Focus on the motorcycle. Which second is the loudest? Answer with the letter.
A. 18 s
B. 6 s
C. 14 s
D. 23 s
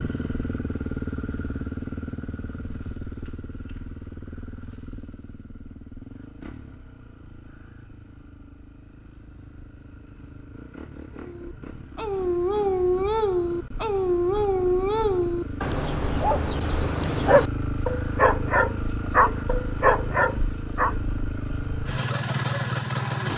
D.